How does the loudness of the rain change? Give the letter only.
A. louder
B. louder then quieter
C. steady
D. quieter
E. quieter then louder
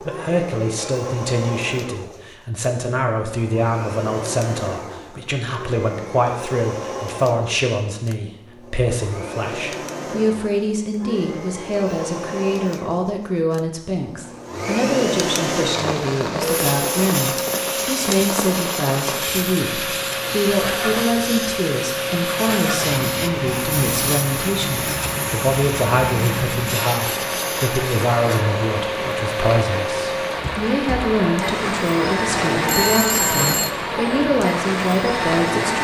C.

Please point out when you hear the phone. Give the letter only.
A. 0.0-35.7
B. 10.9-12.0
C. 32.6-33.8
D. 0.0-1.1
C.